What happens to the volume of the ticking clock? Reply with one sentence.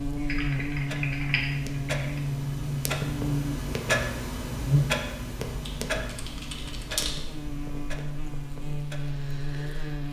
The loudness of the ticking clock goes up, then down.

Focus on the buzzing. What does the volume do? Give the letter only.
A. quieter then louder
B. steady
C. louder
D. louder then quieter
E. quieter
A.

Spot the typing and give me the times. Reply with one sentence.
You can hear the typing from 0.2 to 2.2 s and from 5.6 to 7.2 s.